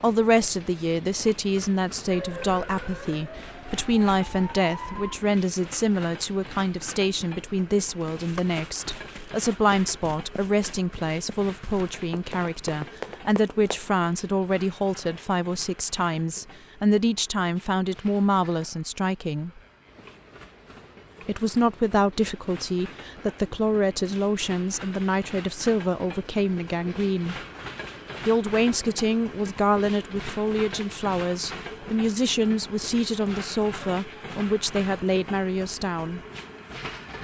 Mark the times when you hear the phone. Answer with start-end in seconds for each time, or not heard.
not heard.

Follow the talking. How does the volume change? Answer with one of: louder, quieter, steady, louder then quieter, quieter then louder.
steady.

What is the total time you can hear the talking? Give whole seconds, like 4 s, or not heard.
34 s.